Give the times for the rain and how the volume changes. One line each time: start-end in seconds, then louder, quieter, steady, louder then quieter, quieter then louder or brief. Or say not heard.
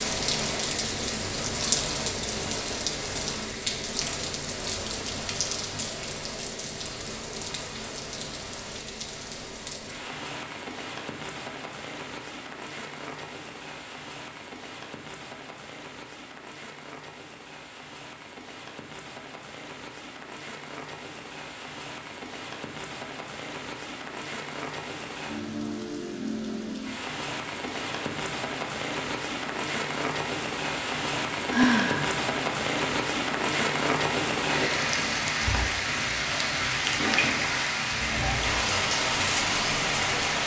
0.0-40.4 quieter then louder.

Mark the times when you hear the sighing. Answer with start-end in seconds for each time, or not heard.
31.5-32.2.